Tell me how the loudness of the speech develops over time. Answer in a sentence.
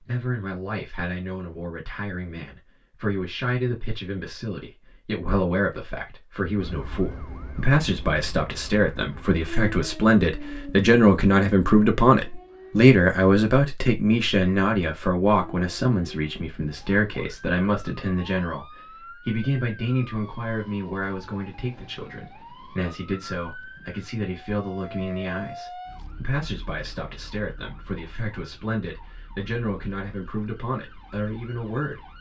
The loudness of the speech goes up, then down.